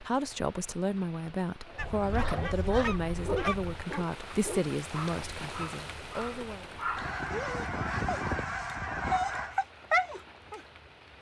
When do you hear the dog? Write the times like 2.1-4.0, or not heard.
1.8-10.6.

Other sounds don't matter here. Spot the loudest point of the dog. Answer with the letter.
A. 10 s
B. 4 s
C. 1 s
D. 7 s
A.